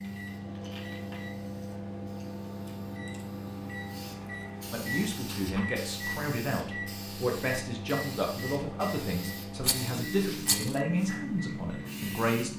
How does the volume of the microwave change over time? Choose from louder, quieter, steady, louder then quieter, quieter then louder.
steady.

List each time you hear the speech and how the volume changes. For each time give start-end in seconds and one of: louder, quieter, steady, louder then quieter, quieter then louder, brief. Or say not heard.
4.7-12.5 steady.